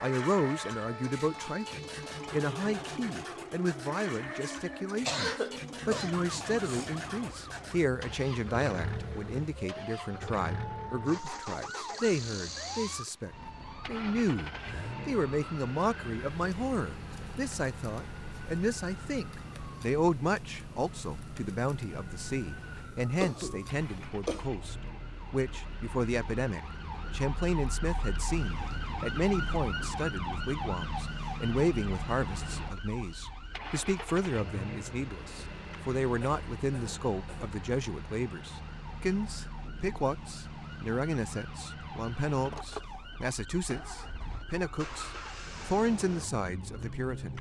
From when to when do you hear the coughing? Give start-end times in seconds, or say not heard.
5.0-6.9, 23.2-24.5, 36.2-37.5.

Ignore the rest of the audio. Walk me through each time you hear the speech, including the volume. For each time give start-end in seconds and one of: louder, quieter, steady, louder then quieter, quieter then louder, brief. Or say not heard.
0.0-47.3 steady.